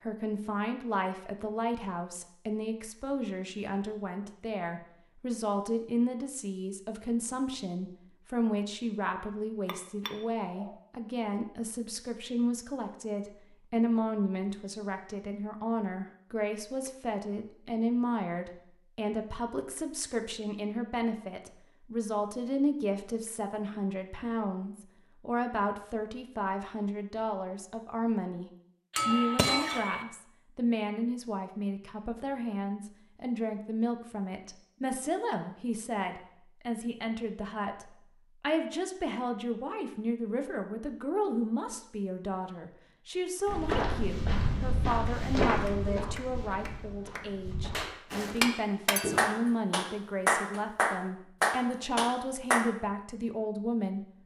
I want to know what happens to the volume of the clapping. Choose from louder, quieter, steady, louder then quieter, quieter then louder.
louder.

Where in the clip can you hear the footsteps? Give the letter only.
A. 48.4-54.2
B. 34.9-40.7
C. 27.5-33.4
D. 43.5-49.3
D.